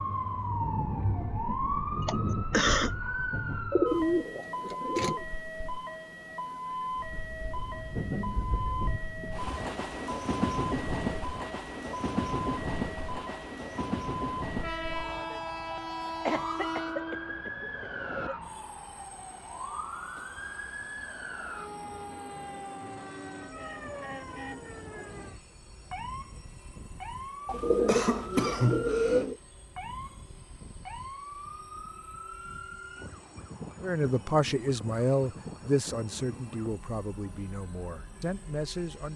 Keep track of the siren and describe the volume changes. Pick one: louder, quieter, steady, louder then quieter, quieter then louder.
quieter.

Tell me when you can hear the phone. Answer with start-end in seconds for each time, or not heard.
not heard.